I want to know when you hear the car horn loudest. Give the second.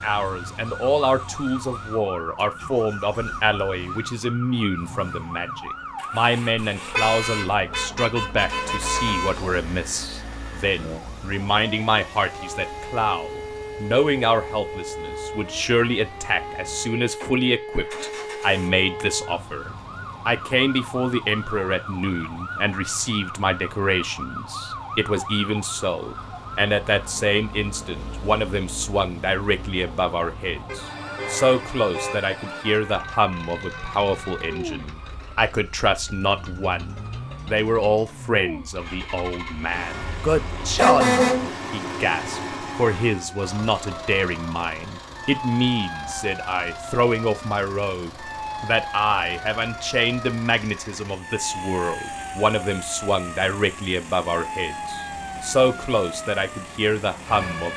41 s.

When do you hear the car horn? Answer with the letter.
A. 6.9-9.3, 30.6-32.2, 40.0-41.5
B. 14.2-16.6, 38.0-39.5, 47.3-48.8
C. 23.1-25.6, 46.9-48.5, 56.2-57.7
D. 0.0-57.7
A.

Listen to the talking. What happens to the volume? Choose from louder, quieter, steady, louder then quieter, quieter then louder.
steady.